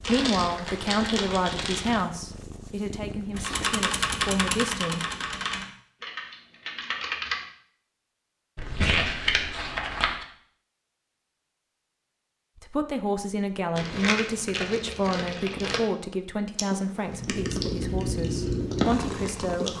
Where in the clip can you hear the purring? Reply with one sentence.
You can hear the purring from 0.0 to 4.5 s and from 17.1 to 19.7 s.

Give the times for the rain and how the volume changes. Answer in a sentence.
You can't hear the rain here.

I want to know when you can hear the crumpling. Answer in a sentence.
The crumpling can be heard from 0.0 to 2.0 s, from 8.6 to 10.2 s and from 13.8 to 15.8 s.